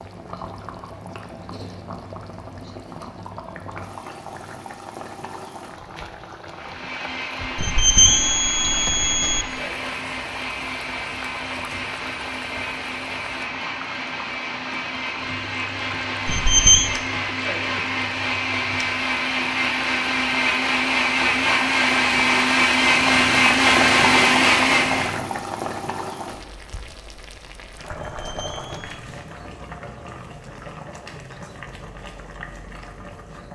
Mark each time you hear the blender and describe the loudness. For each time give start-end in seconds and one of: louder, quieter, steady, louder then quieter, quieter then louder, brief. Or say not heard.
6.5-25.2 louder.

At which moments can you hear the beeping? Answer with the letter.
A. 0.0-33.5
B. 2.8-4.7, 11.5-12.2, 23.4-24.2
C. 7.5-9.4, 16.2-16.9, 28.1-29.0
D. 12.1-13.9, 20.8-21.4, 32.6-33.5
C.